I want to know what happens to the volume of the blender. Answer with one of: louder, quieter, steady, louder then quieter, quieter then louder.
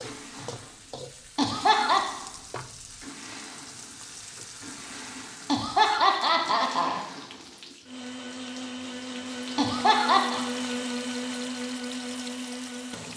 louder.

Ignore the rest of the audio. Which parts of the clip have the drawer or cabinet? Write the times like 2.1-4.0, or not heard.
not heard.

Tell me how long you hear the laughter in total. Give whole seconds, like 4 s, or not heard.
3 s.